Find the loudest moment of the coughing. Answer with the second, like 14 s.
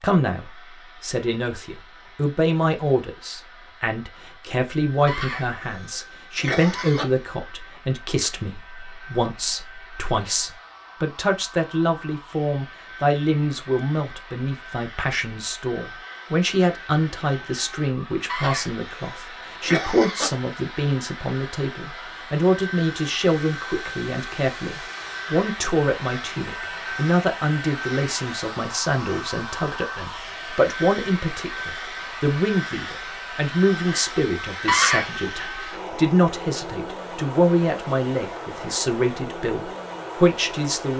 35 s.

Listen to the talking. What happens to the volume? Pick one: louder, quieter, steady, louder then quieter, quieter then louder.
steady.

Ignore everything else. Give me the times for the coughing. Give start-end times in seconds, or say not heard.
5.0-7.0, 18.2-20.3, 34.6-35.1.